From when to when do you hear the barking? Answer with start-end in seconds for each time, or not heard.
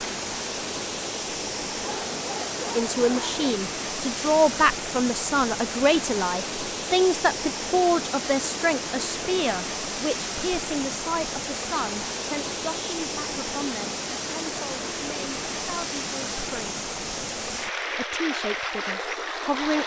1.8-3.5.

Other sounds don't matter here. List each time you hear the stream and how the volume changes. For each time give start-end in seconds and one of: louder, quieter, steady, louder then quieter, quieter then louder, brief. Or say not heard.
0.0-19.8 steady.